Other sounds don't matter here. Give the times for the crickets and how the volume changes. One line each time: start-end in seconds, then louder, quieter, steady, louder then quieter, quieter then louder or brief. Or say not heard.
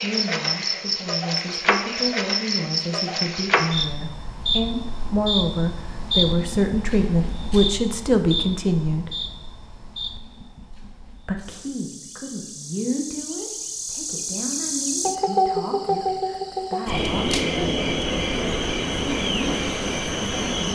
0.0-20.6 quieter then louder.